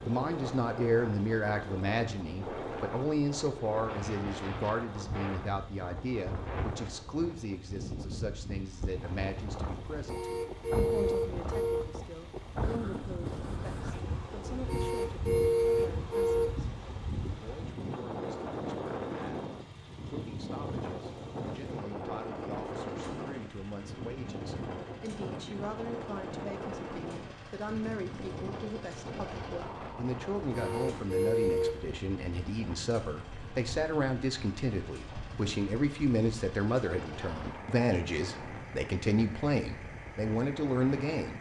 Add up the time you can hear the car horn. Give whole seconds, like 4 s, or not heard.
5 s.